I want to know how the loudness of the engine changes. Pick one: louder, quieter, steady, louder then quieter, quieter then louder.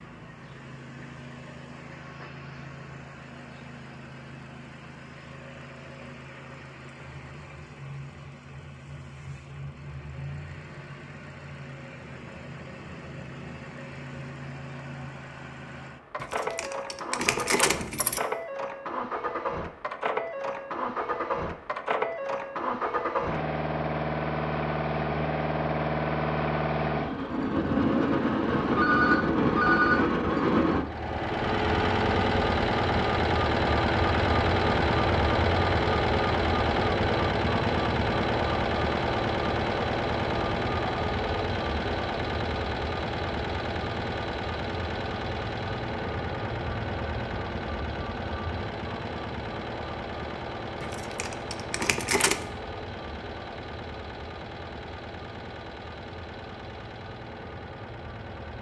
louder then quieter.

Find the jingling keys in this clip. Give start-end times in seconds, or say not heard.
16.2-18.2, 50.8-52.5.